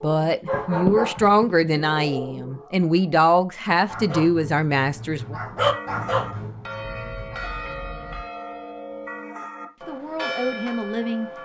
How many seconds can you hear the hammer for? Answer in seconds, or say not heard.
not heard.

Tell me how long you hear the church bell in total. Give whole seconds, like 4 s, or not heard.
6 s.